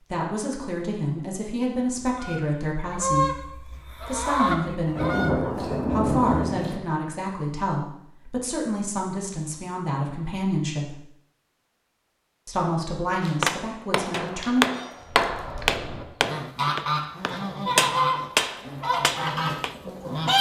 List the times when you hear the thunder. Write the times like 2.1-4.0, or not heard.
5.0-6.8.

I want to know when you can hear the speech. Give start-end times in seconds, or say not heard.
0.1-10.9, 12.4-14.7.